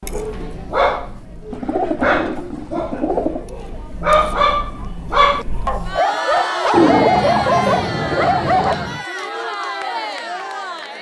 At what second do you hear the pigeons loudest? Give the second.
7 s.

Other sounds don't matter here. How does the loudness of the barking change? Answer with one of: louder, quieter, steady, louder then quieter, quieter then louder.
louder.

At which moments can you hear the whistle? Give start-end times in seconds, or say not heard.
not heard.